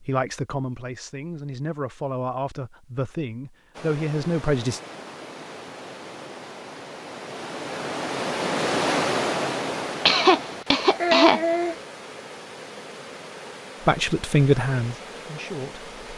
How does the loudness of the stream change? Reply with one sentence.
The volume of the stream goes up, then down.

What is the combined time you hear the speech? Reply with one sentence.
The speech can be heard for 7 seconds in total.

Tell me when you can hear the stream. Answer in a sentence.
The stream can be heard from 3.7 to 16.1 s.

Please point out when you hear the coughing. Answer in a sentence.
You can hear the coughing from 10.1 to 11.8 s.